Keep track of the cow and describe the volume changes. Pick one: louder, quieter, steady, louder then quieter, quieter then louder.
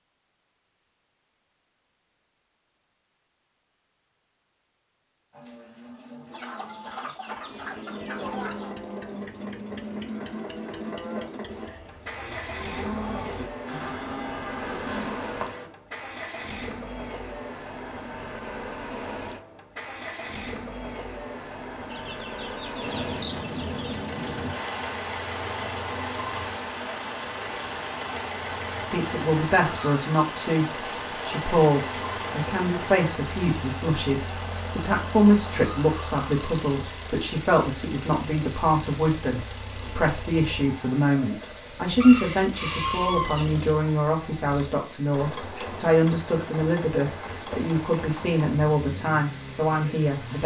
louder.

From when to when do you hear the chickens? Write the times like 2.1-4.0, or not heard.
6.3-8.8, 21.9-24.0, 42.0-43.5.